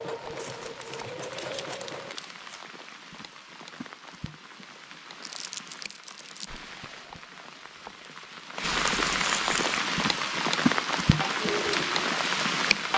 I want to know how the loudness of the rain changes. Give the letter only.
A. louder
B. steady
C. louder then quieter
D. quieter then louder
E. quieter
A.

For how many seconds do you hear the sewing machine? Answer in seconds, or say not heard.
4 s.